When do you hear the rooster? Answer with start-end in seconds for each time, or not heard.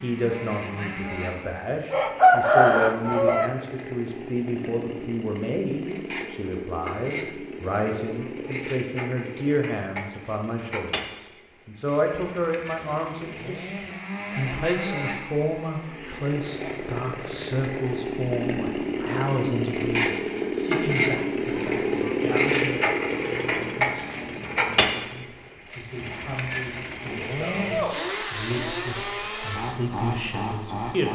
1.9-3.5.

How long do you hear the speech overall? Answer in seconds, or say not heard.
31 s.